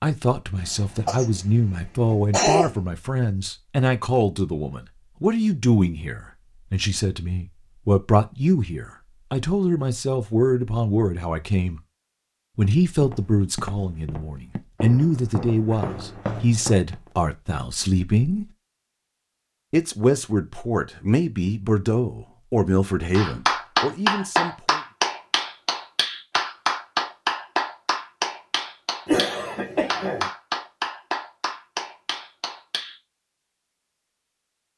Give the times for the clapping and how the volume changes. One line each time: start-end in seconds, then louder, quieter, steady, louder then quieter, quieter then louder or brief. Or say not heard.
23.1-33.0 quieter.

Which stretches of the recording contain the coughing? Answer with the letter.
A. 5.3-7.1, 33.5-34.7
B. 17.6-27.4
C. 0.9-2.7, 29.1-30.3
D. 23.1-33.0
C.